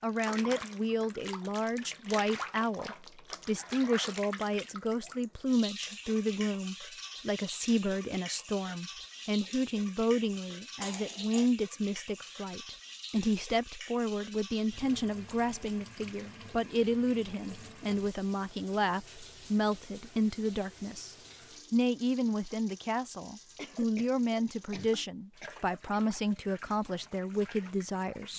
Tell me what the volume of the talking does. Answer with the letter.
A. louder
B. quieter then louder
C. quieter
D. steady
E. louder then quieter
D.